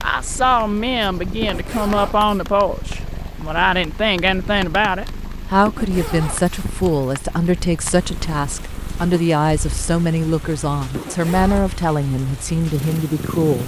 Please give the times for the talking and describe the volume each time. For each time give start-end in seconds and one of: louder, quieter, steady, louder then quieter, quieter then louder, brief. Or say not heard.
0.0-13.6 steady.